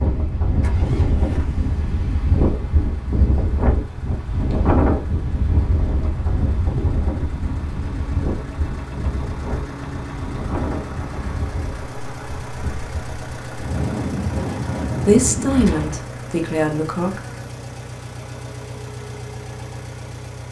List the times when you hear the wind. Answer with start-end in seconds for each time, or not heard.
0.0-16.1.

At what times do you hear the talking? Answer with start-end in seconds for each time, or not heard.
15.1-17.2.